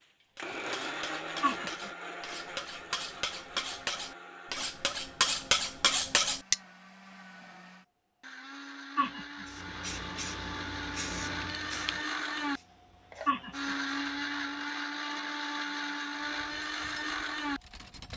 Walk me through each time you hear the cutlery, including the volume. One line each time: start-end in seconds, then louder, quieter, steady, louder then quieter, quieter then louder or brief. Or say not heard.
0.3-6.5 louder
16.2-18.1 brief.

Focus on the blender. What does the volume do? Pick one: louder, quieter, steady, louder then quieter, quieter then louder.
quieter then louder.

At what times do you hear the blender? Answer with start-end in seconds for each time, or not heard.
0.3-18.1.